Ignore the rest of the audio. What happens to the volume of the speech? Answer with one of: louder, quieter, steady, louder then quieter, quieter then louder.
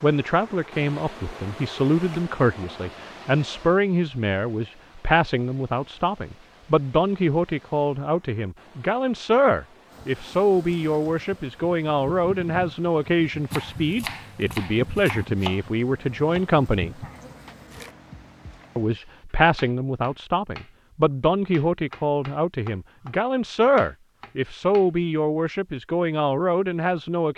steady.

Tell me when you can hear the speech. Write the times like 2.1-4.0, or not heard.
0.0-17.1, 18.8-27.3.